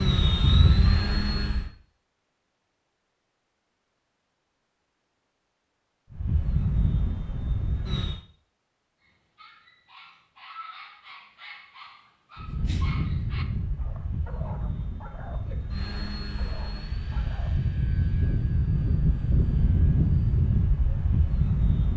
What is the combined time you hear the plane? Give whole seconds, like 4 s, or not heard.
13 s.